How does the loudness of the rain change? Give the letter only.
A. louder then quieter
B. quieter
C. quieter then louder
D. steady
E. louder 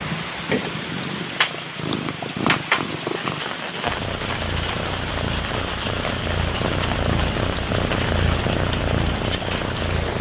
D.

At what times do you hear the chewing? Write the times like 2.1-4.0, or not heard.
not heard.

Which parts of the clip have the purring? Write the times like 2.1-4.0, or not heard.
0.0-10.1.